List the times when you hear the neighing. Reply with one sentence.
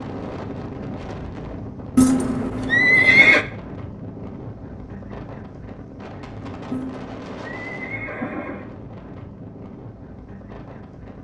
You can hear the neighing from 1.9 to 3.5 s and from 6.7 to 8.7 s.